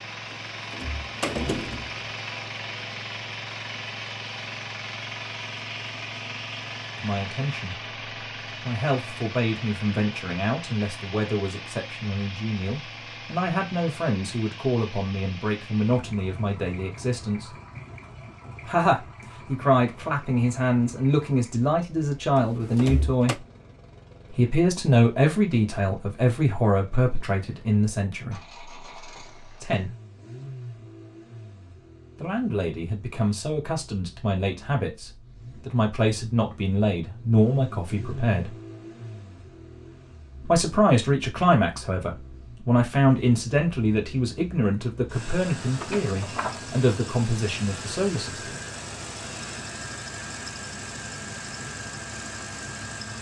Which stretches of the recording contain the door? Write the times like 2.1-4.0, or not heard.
0.7-1.9, 22.4-23.4, 45.8-46.5.